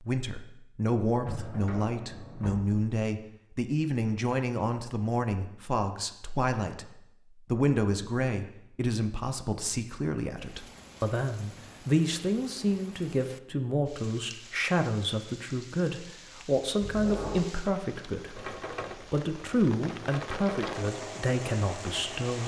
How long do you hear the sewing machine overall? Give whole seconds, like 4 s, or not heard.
4 s.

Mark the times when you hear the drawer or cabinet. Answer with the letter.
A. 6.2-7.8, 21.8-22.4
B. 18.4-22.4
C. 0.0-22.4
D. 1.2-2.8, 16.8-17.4
D.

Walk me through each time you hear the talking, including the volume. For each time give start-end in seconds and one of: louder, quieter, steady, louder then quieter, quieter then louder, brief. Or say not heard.
0.0-22.4 steady.